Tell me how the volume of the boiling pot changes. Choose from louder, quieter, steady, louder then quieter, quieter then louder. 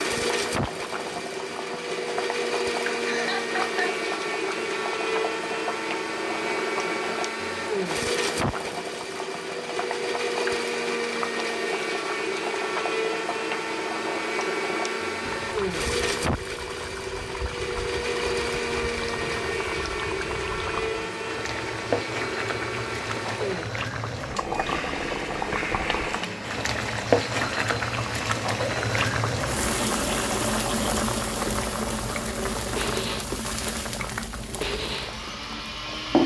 louder.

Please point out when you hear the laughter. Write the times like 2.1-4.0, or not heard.
3.0-4.0.